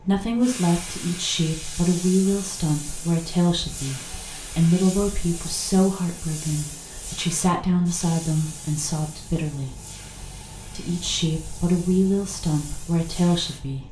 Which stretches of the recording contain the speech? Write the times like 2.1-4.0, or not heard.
0.0-9.8, 10.8-13.8.